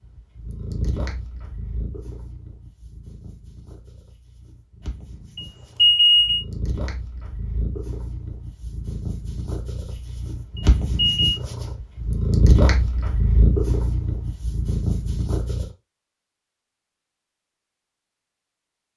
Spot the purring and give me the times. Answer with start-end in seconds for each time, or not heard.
0.1-15.7.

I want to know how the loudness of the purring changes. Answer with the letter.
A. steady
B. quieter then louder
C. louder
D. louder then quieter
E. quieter
B.